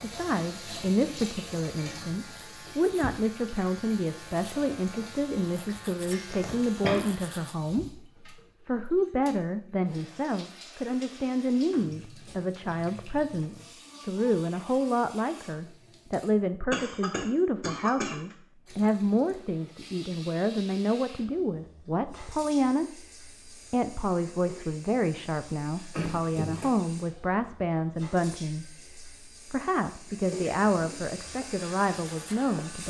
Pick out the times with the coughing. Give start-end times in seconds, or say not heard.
6.1-7.0, 16.7-18.1, 25.9-26.8.